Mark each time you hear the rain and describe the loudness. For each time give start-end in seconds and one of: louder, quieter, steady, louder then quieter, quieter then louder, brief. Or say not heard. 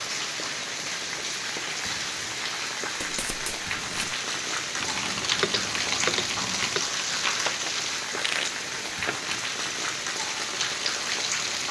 0.0-11.6 steady.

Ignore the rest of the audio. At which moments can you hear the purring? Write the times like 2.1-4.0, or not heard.
not heard.